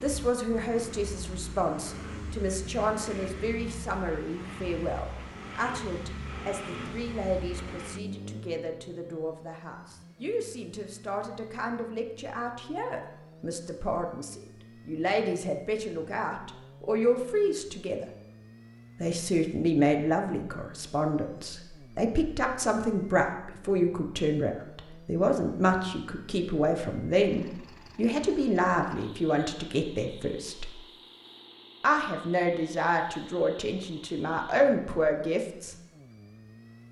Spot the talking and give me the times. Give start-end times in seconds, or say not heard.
0.0-18.1, 19.0-30.7, 31.8-35.8.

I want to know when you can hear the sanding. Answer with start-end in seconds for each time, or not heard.
not heard.